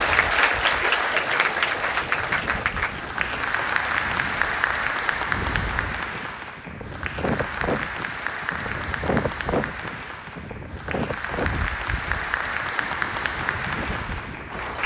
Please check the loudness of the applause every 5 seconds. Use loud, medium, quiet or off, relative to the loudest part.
loud, medium, medium.